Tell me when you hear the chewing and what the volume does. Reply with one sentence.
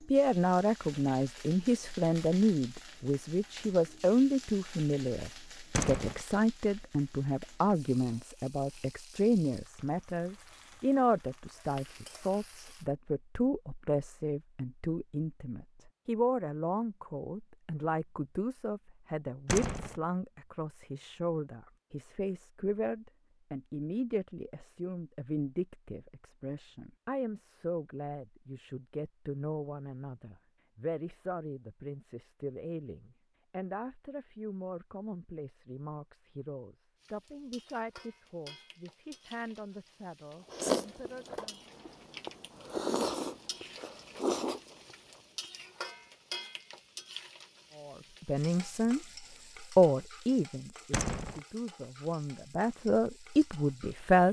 The chewing can be heard from 40.5 to 46.4 s, getting louder then quieter.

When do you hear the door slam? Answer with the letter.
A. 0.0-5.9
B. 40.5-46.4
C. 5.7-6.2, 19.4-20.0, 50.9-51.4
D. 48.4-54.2
C.